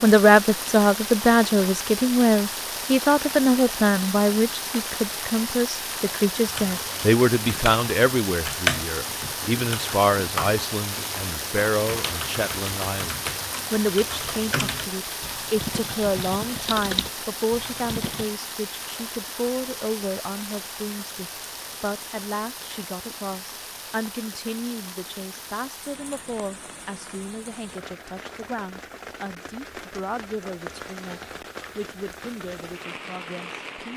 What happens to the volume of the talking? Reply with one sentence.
The volume of the talking goes down.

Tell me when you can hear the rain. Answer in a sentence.
You can hear the rain from 0.0 to 33.9 s.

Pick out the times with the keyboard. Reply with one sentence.
The keyboard can be heard from 6.5 to 18.3 s.